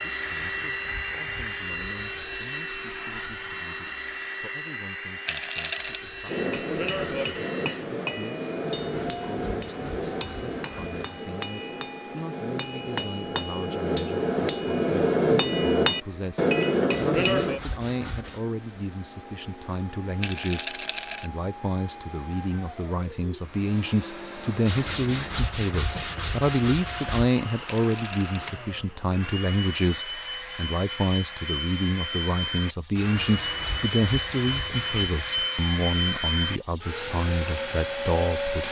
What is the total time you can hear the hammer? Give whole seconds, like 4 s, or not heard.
11 s.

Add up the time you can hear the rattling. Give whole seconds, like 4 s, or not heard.
3 s.